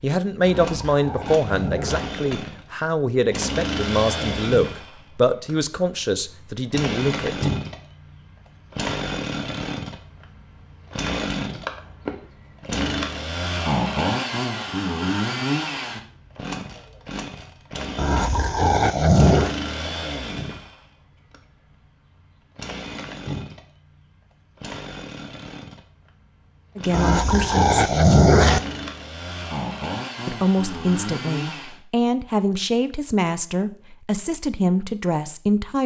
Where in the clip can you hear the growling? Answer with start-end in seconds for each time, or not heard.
0.4-2.1, 17.9-19.6, 26.9-28.6.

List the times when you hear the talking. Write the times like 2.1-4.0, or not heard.
0.0-7.5, 26.8-27.7, 30.2-35.8.